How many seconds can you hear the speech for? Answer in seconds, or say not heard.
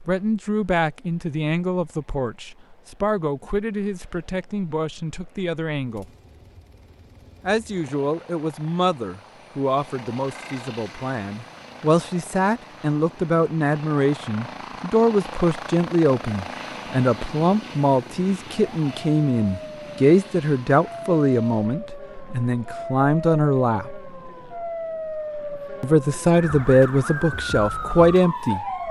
25 s.